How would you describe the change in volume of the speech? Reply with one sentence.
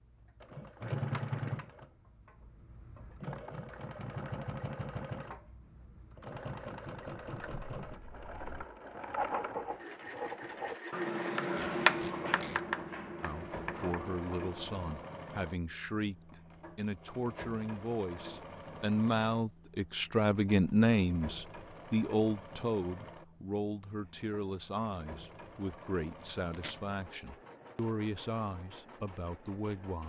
The loudness of the speech goes up, then down.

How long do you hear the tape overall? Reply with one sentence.
You can hear the tape for 2 seconds altogether.